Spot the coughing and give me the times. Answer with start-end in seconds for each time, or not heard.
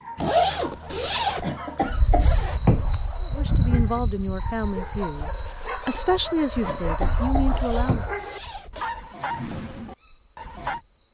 1.4-2.9, 6.6-8.1.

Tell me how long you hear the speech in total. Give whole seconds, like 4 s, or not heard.
5 s.